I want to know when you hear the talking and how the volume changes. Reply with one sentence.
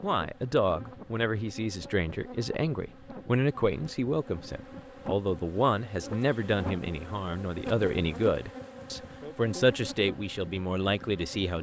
You can hear the talking from 0.0 to 11.5 s, at a steady volume.